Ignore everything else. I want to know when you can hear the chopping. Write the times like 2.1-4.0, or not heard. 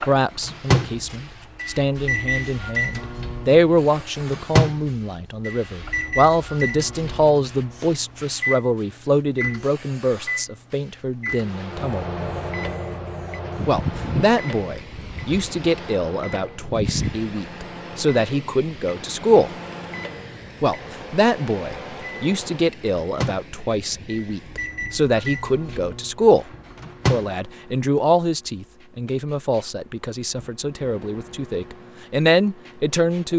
not heard.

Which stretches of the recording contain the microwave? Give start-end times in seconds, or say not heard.
0.0-27.4.